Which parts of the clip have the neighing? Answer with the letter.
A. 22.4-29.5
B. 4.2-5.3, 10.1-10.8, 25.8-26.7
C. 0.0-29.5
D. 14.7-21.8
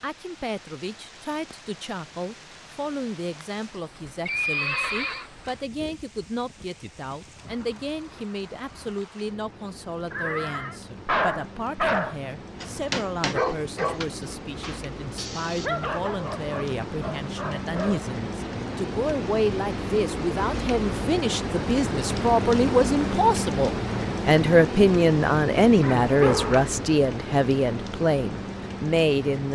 B.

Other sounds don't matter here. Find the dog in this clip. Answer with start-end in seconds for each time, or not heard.
11.1-18.1.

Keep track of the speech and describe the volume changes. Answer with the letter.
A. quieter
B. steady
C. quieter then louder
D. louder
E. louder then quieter
D.